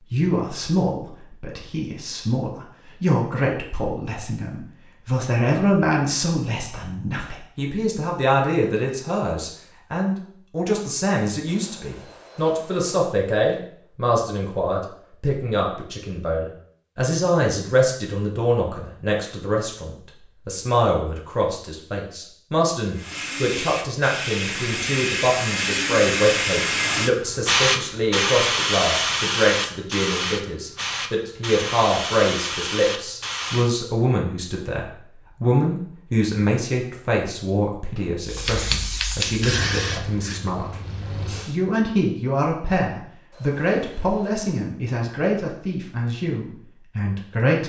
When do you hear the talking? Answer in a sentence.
The talking can be heard from 0.1 to 47.6 s.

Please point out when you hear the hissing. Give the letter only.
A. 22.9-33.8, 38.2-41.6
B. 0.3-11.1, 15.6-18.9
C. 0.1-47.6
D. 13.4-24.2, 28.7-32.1
A.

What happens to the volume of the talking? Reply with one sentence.
The loudness of the talking stays about the same.